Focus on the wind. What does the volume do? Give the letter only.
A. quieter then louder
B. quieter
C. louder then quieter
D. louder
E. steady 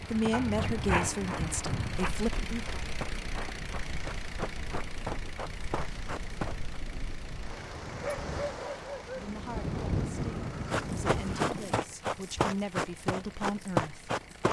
A.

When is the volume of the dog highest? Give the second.
1 s.